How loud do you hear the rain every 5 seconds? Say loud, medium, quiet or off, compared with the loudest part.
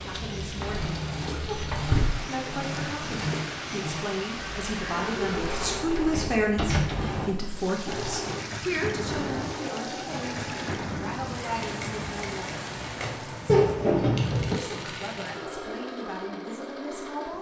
loud, loud, loud, off.